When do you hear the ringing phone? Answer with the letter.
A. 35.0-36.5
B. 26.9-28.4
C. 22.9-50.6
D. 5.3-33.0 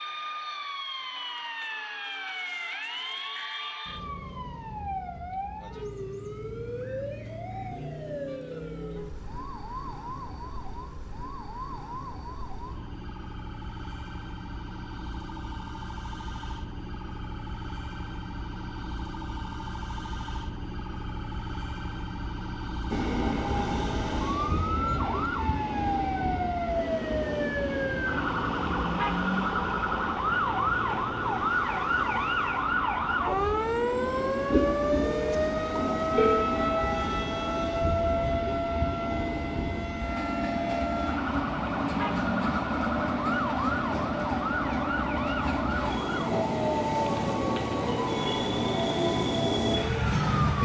A.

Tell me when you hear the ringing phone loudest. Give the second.
36 s.